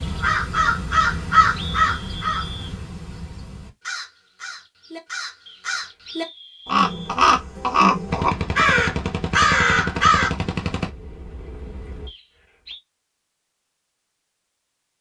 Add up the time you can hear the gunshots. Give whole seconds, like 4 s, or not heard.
4 s.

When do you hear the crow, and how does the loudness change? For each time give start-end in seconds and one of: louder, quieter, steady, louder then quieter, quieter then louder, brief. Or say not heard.
0.0-10.3 quieter then louder.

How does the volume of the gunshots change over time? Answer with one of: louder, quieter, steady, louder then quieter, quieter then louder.
quieter.